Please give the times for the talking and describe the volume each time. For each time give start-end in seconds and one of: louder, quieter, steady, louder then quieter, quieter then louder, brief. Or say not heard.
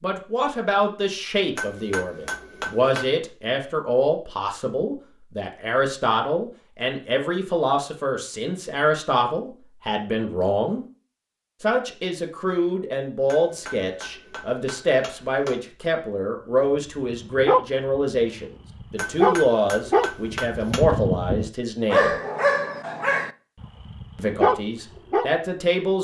0.0-10.8 steady
11.6-22.1 steady
24.1-25.9 brief.